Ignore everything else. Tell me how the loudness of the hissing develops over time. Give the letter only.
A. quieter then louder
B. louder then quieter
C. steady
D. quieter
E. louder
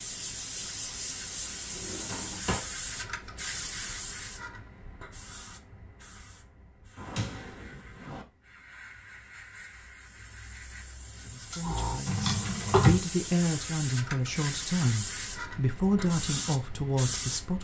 A.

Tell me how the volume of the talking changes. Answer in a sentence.
The volume of the talking goes up.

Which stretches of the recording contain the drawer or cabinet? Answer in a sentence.
The drawer or cabinet can be heard from 1.7 to 2.6 s, from 7.0 to 8.2 s and from 12.1 to 13.0 s.